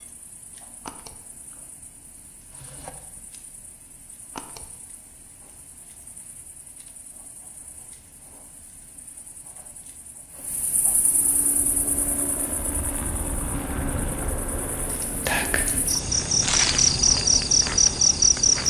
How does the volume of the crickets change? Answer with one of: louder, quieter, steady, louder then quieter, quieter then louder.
louder.